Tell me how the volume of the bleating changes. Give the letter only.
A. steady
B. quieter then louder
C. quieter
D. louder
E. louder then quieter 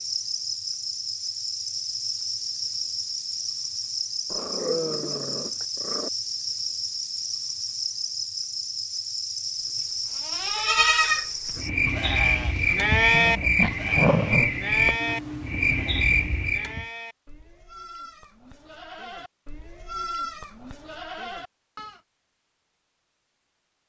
B.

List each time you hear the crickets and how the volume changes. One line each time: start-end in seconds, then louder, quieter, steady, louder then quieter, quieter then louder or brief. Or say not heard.
0.0-16.9 louder.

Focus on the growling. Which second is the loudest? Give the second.
14 s.